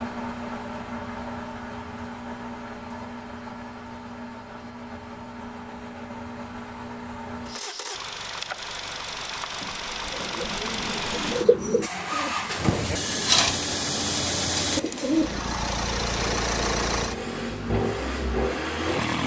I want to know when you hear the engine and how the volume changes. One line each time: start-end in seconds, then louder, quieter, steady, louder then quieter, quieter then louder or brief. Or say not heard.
0.0-19.2 louder.